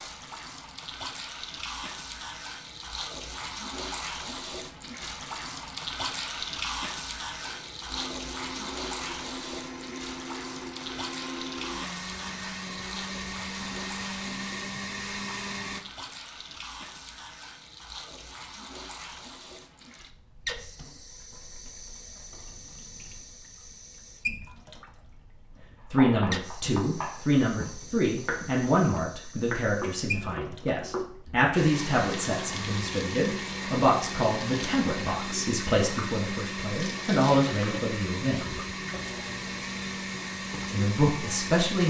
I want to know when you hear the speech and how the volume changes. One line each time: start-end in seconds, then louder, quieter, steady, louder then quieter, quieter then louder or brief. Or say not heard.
25.9-38.5 steady
40.6-41.8 brief.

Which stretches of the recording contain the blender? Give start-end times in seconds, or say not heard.
7.4-15.8, 31.6-41.8.